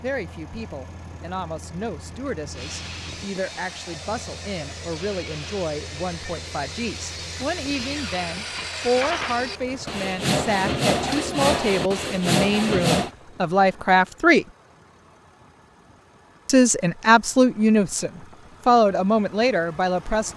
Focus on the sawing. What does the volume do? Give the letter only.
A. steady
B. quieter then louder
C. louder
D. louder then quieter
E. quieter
C.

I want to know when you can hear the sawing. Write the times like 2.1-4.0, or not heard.
2.5-13.1.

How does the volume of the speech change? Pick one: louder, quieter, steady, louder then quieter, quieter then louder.
louder.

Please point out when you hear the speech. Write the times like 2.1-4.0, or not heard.
0.0-14.4, 16.4-20.3.